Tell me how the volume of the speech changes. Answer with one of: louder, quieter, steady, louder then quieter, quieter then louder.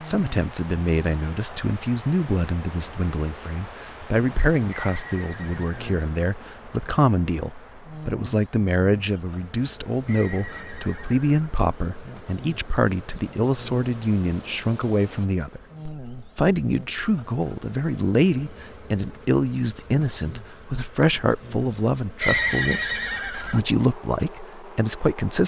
steady.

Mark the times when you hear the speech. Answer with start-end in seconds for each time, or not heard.
0.0-25.4.